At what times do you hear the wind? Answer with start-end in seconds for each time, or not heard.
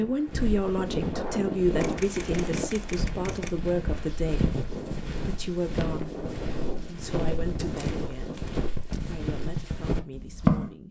0.0-8.9.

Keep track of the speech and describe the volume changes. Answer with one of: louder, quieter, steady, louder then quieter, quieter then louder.
quieter.